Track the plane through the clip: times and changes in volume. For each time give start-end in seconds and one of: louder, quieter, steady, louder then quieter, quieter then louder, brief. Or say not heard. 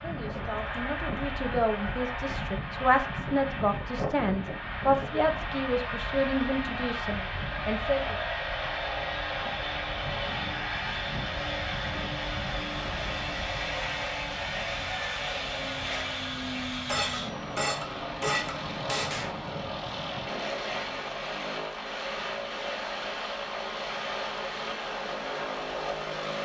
0.0-26.3 steady.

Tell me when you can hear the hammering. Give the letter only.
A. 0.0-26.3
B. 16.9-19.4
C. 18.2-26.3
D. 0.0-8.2
B.